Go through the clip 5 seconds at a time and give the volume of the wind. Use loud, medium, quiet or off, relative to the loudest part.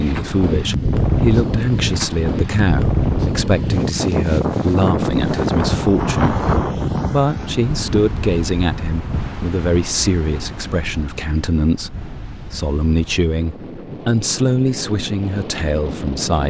loud, loud, quiet, medium.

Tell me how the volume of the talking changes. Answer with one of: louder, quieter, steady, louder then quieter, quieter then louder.
steady.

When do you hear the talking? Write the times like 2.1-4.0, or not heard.
0.0-16.4.